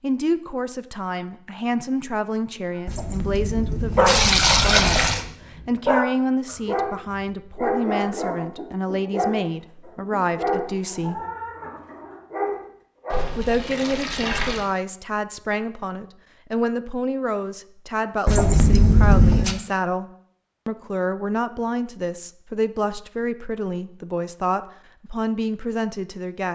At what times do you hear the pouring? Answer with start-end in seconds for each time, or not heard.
2.9-5.2, 13.1-14.7, 18.2-19.6.